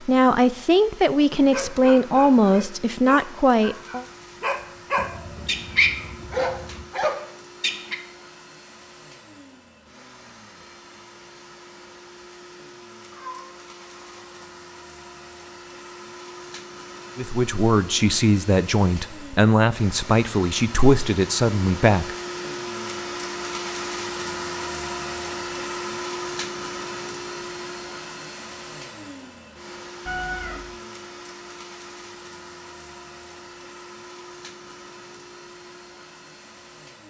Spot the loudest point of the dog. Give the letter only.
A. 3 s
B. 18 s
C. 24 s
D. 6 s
D.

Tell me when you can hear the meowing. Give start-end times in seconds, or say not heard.
5.0-6.9, 13.1-14.4, 30.1-30.8.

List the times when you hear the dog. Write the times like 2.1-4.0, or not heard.
1.3-8.0.